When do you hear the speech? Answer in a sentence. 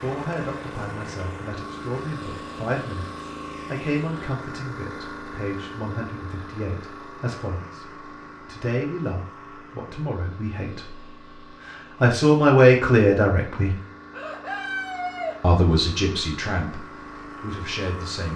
The speech can be heard from 0.0 to 13.7 s and from 15.4 to 18.3 s.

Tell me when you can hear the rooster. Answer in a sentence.
You can hear the rooster from 14.1 to 15.4 s.